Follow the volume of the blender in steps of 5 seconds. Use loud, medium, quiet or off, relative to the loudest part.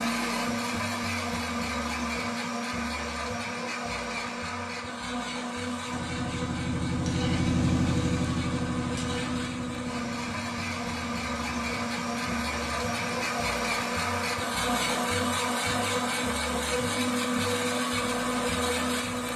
loud, medium, loud, loud.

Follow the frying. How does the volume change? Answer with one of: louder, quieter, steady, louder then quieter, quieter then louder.
quieter.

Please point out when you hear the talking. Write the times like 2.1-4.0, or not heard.
not heard.